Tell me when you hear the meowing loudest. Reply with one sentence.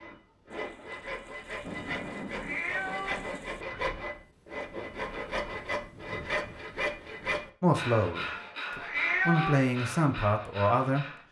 The volume of the meowing peaks at 9 seconds.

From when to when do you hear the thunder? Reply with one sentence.
The thunder can be heard from 0.5 to 3.6 s.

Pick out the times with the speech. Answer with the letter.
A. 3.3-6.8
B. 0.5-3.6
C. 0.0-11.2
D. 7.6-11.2
D.